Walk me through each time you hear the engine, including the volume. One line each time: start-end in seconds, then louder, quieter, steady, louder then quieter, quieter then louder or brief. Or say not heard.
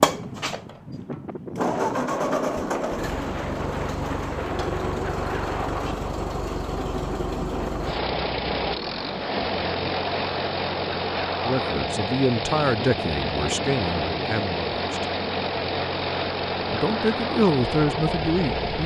0.0-18.8 steady.